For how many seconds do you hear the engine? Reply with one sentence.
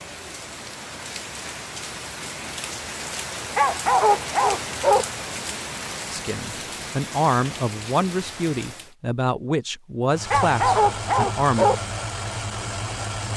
The engine can be heard for 3 seconds in total.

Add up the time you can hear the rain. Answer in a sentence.
The rain can be heard for 9 seconds in total.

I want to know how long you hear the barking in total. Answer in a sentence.
You can hear the barking for 3 seconds altogether.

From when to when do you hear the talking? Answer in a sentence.
You can hear the talking from 6.1 to 11.7 s.